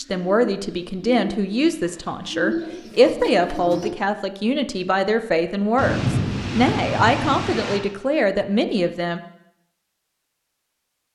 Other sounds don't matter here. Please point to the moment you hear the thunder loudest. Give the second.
6 s.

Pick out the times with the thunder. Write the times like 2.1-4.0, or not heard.
5.8-7.8.